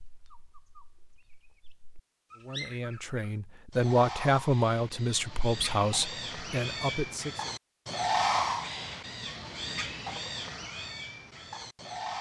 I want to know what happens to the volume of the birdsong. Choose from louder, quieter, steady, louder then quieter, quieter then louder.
louder then quieter.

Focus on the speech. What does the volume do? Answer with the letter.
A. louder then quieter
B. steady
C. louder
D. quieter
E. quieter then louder
A.